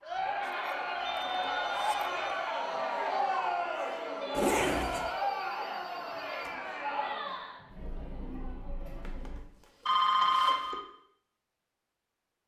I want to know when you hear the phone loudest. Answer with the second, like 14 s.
10 s.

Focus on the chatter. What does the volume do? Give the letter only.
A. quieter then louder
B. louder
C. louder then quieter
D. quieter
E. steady
D.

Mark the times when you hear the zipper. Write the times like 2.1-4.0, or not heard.
0.4-2.1, 4.3-5.1, 9.0-10.7.